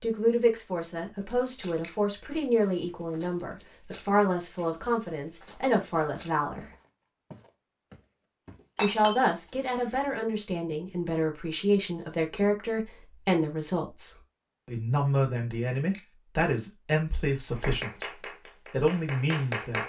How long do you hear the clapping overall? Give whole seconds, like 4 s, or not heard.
2 s.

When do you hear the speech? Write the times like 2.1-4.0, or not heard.
0.0-6.7, 8.8-19.8.